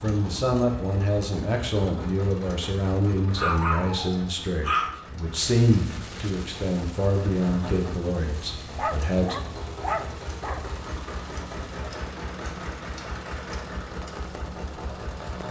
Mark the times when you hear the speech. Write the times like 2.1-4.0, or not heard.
0.0-9.3.